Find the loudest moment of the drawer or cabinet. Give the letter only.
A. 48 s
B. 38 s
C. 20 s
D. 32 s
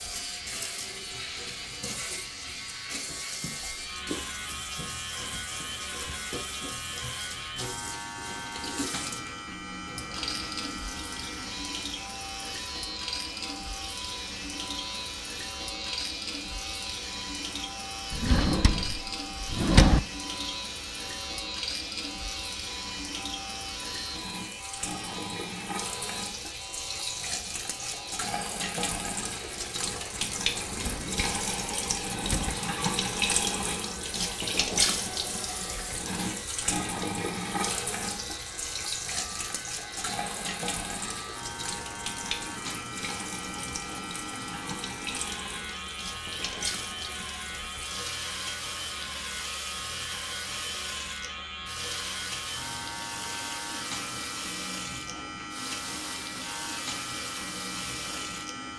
C.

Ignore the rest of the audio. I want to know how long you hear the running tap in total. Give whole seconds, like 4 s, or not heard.
59 s.